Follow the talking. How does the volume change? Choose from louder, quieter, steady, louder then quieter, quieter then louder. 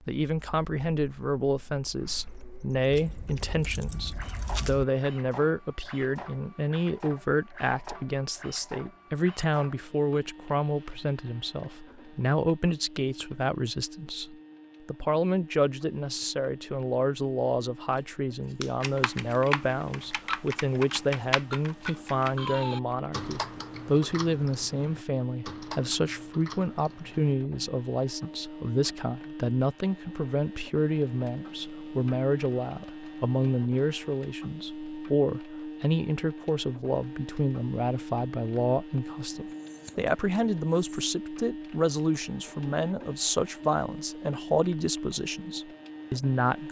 steady.